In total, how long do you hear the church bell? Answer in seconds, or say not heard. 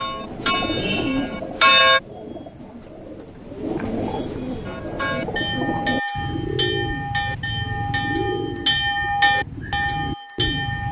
8 s.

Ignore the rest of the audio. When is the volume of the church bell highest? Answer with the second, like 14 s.
2 s.